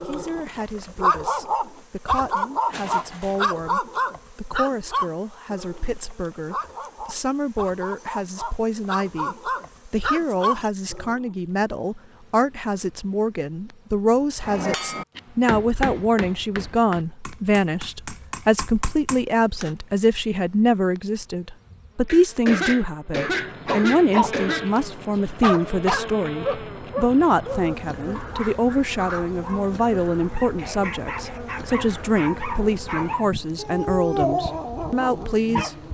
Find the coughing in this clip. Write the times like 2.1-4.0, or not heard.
2.7-3.5, 22.1-24.7.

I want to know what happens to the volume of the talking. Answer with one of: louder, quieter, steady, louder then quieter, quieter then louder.
louder.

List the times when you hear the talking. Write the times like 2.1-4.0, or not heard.
0.0-35.8.